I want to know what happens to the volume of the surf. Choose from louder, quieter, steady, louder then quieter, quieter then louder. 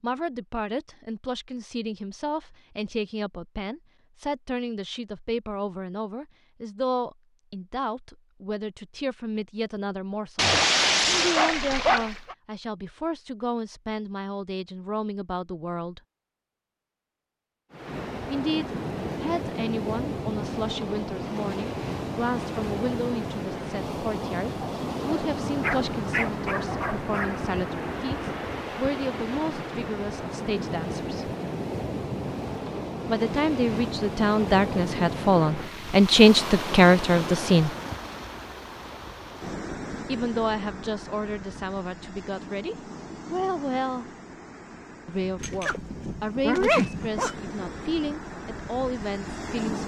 quieter.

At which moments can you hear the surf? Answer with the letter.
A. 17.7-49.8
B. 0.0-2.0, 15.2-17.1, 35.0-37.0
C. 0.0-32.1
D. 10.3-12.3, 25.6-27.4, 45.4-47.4
A.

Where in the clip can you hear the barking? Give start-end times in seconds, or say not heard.
10.3-12.3, 25.6-27.4, 45.4-47.4.